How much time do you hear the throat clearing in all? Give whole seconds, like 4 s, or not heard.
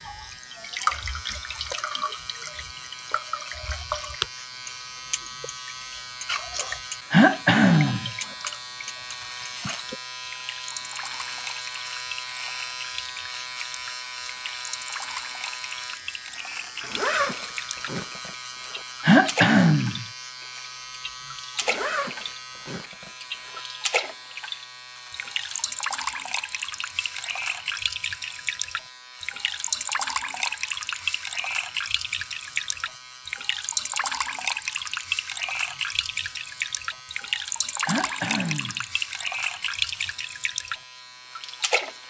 3 s.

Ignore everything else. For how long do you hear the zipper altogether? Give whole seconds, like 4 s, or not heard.
4 s.